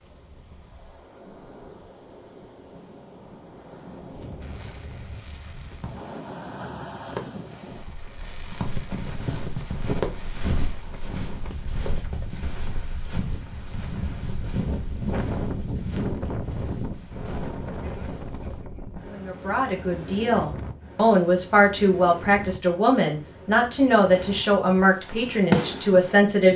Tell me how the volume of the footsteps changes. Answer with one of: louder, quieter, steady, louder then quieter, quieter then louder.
quieter.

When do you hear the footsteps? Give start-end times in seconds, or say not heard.
8.6-18.6.